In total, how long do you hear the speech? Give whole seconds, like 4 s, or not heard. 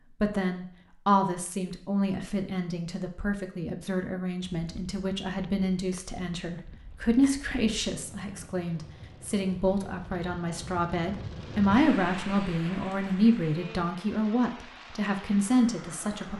16 s.